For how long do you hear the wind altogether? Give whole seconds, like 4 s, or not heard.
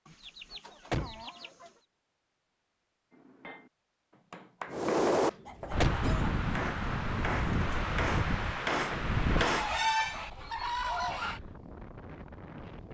8 s.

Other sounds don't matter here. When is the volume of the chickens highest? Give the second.
10 s.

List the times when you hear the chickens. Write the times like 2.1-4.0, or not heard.
0.1-1.8, 4.7-6.3, 9.3-11.4.